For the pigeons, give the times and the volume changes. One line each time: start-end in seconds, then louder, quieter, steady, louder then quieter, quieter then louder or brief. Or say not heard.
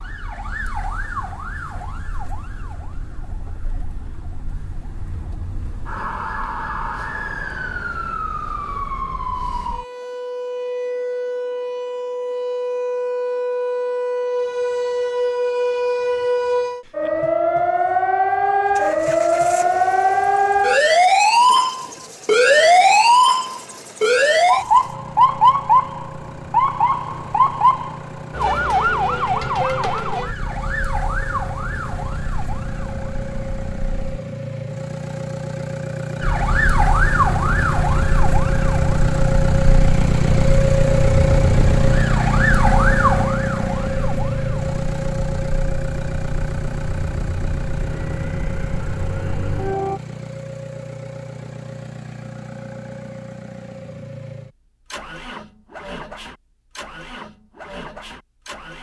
not heard.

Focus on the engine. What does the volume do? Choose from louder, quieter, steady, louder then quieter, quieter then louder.
louder then quieter.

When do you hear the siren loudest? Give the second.
23 s.